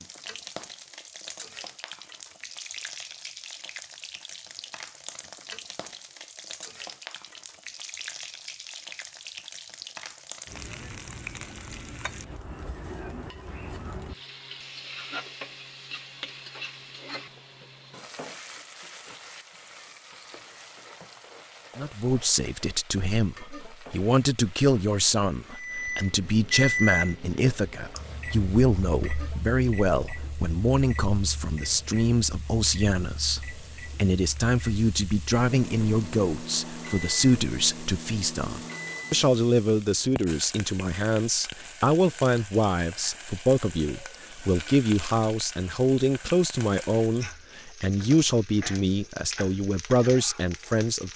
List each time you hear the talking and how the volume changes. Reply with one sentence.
The talking can be heard from 21.8 to 51.1 s, at a steady volume.